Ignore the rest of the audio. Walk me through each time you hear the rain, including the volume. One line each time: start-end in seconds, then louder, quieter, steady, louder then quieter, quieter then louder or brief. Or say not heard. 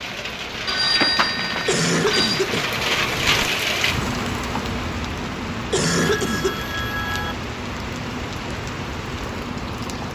0.0-10.0 louder then quieter.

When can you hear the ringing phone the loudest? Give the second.
1 s.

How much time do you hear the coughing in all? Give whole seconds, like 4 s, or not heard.
3 s.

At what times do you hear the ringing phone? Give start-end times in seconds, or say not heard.
0.7-2.4, 6.0-7.3.